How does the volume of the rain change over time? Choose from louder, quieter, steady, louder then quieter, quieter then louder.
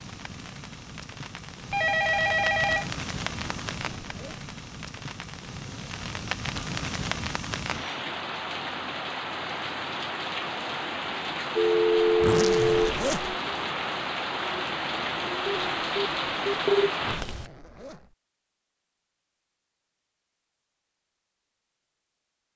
louder.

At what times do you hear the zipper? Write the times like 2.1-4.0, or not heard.
3.4-4.5, 12.2-13.3, 17.0-18.1.